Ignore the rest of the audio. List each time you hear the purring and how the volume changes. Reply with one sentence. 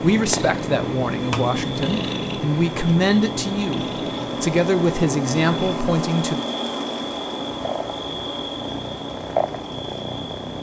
The purring can be heard from 0.0 to 10.5 s, getting quieter then louder.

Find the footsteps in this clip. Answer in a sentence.
The footsteps can't be heard in this clip.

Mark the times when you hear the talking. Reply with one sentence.
You can hear the talking from 0.0 to 6.4 s.